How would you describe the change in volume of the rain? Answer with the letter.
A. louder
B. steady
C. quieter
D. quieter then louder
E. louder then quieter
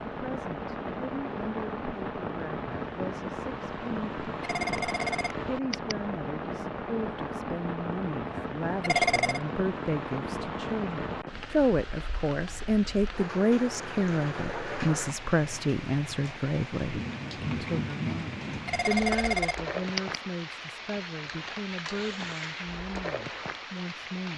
B.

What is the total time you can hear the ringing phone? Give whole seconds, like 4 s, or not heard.
4 s.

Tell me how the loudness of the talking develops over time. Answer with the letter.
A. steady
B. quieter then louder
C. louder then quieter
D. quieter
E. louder
C.